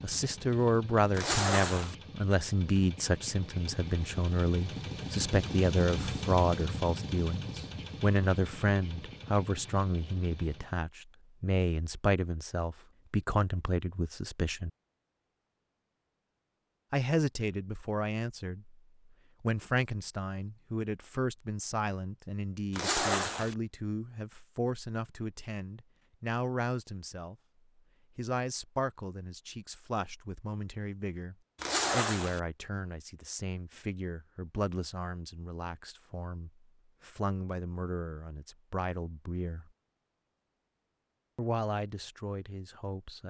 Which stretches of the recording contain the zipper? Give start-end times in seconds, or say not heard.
1.1-1.9, 22.7-23.6, 31.6-32.4.